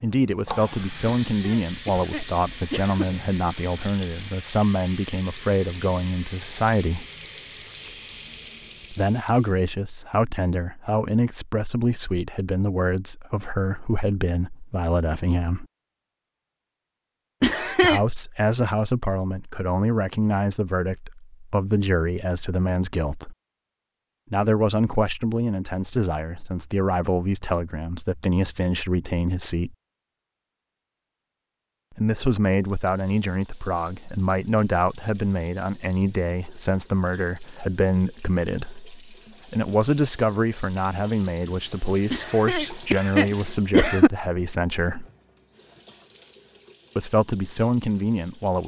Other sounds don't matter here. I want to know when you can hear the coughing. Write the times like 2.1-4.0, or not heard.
1.3-3.0, 17.4-18.0, 42.1-44.1.